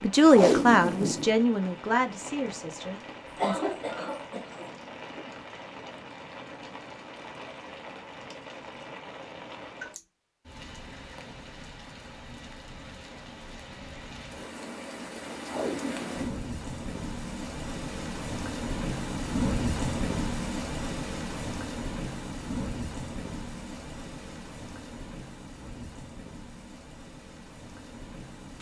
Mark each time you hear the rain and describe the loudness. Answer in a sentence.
The rain can be heard from 0.0 to 28.5 s, getting louder then quieter.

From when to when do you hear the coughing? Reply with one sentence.
You can hear the coughing from 3.2 to 4.7 s.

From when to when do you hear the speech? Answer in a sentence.
The speech can be heard from 0.0 to 3.6 s.